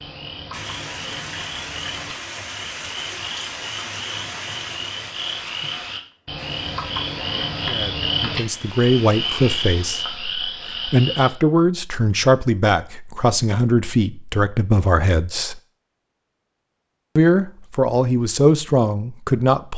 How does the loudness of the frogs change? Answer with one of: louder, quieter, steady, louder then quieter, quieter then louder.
louder.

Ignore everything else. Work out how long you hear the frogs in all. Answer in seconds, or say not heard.
11 s.